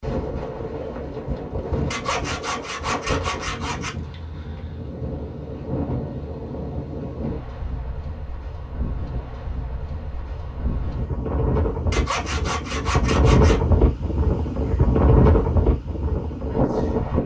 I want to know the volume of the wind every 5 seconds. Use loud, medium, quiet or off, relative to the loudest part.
medium, medium, loud, loud.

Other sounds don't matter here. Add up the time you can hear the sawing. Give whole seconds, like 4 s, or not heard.
4 s.